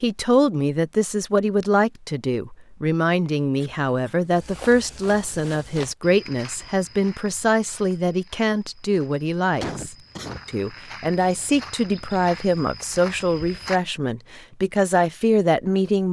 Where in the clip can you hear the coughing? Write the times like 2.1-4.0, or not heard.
3.6-4.3, 9.6-10.4.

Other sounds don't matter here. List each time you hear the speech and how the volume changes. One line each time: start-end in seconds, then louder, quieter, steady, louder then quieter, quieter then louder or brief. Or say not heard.
0.0-16.0 steady.